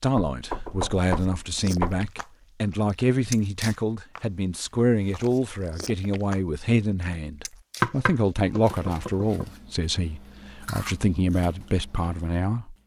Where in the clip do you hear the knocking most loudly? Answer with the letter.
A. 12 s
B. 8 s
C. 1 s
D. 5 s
B.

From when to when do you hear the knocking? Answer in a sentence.
The knocking can be heard from 0.1 to 2.1 s and from 7.8 to 9.4 s.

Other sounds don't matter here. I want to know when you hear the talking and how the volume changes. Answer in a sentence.
You can hear the talking from 0.0 to 12.8 s, at a steady volume.